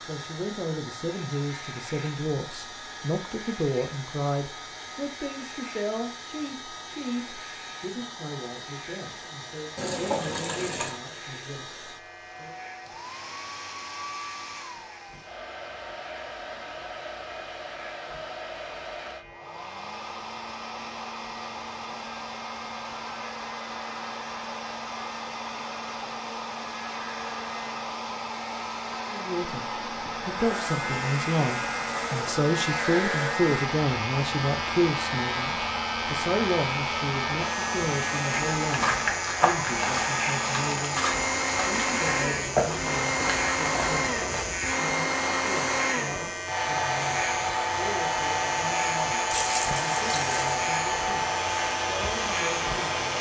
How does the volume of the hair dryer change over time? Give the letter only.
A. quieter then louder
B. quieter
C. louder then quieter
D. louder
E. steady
D.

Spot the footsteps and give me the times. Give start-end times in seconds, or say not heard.
38.5-44.8.